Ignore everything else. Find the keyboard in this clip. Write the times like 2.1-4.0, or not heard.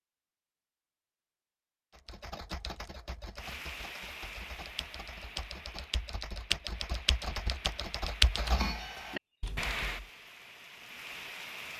1.9-9.8.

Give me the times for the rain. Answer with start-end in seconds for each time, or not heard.
3.4-11.7.